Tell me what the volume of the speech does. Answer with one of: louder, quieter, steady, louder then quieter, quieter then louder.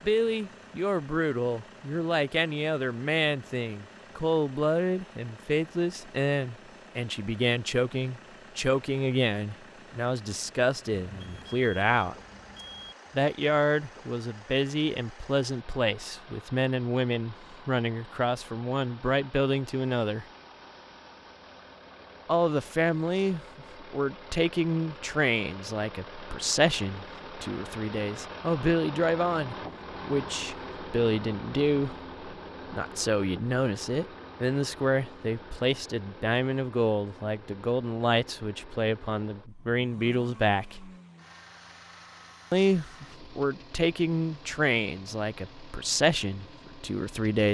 steady.